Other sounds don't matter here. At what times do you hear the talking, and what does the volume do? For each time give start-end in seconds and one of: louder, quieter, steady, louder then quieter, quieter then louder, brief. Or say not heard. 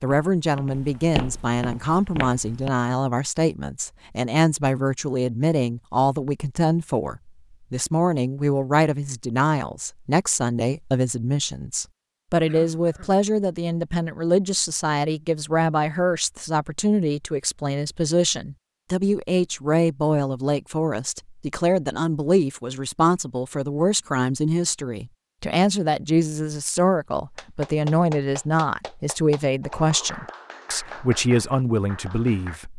0.0-32.7 steady.